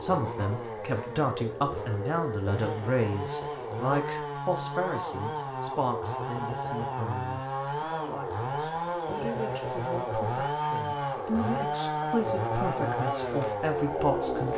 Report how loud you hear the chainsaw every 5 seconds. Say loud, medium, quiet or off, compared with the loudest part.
medium, loud, loud.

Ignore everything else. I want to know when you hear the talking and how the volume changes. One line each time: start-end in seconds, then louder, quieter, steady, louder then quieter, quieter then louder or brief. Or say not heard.
0.0-14.5 quieter then louder.